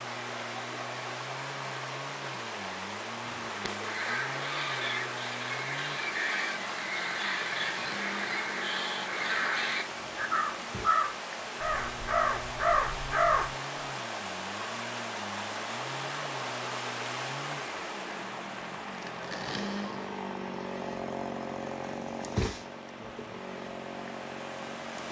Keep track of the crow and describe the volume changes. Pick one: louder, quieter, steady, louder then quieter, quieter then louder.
louder.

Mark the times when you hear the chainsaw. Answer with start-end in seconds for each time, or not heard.
0.0-25.0.